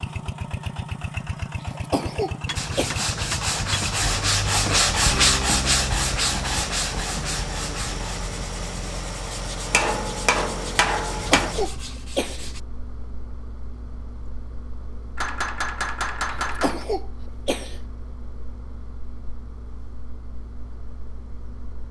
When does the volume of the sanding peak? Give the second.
5 s.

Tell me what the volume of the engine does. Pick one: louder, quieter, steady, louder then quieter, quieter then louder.
quieter.